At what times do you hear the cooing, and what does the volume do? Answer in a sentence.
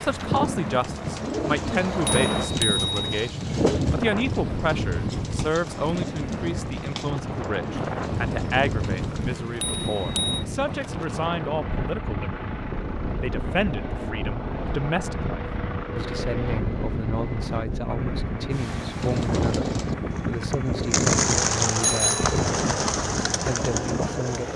You can hear the cooing from 0.0 to 9.5 s, getting quieter; and from 18.8 to 24.5 s, getting louder then quieter.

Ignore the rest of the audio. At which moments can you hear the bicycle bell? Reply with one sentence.
The bicycle bell can be heard from 2.0 to 3.3 s, from 9.6 to 10.4 s and from 21.8 to 22.4 s.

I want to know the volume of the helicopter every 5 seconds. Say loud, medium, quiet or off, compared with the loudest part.
loud, medium, medium, loud, loud.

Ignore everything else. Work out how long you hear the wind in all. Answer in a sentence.
The wind can be heard for 24 seconds in total.